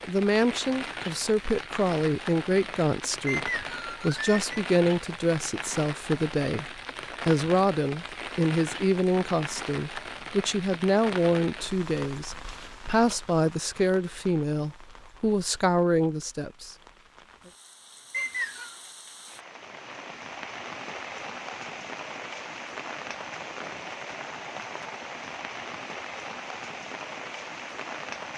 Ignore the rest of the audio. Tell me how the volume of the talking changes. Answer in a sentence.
The loudness of the talking stays about the same.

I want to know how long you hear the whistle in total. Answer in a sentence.
You can hear the whistle for 2 seconds altogether.